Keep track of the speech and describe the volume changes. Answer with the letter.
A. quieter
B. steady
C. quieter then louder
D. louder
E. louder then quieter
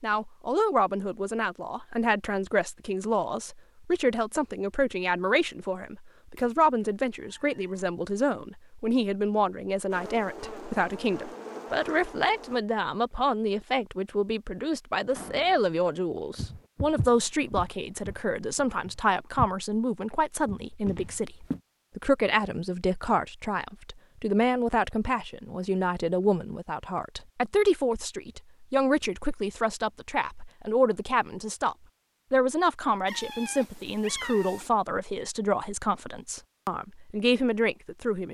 B.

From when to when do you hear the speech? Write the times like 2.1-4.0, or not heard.
0.0-38.2.